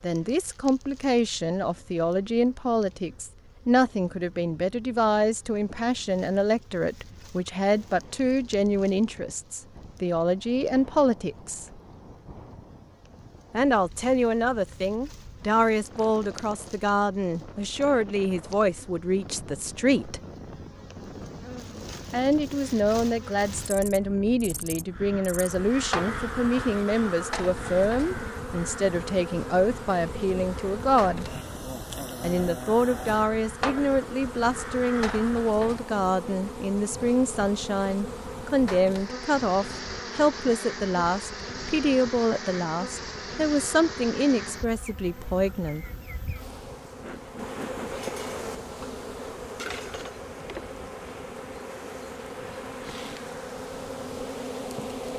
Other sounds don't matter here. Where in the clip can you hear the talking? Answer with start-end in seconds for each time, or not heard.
0.0-11.7, 13.5-20.2, 22.1-31.3, 32.2-45.9.